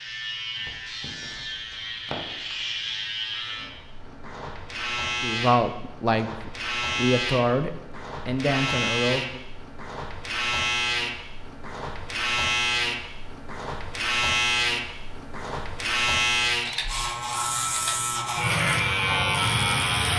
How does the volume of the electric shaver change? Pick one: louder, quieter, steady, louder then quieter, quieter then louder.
louder.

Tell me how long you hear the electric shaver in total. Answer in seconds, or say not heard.
20 s.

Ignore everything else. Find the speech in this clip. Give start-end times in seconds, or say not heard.
5.2-9.4.